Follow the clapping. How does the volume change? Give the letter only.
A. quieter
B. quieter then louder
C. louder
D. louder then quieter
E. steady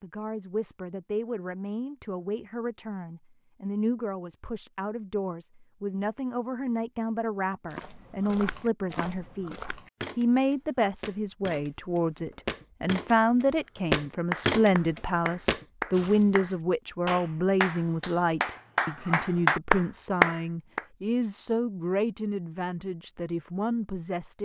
B.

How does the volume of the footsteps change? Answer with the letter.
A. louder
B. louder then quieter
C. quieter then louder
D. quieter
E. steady
A.